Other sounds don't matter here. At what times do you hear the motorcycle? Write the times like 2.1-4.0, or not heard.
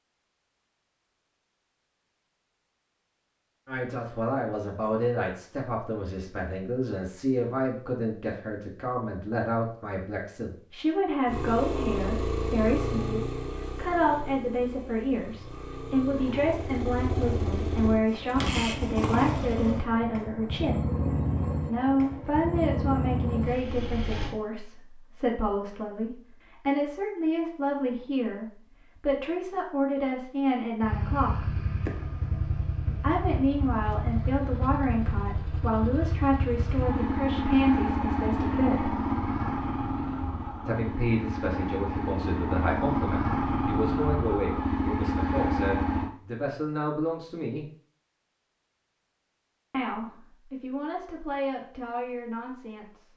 11.2-24.4, 30.8-46.1.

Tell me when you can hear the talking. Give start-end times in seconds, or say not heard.
3.6-20.9, 21.6-31.6, 33.0-39.0, 40.6-47.7, 49.7-53.1.